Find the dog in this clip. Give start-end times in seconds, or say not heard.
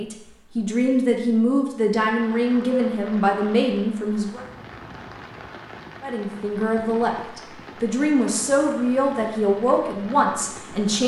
not heard.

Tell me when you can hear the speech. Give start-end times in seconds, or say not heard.
0.0-4.4, 6.0-11.0.